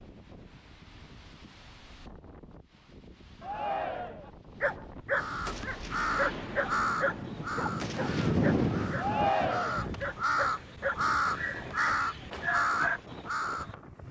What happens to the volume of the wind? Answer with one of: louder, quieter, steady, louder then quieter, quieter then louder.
louder then quieter.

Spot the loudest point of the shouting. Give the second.
9 s.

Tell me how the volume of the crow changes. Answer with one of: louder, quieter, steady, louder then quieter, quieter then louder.
quieter then louder.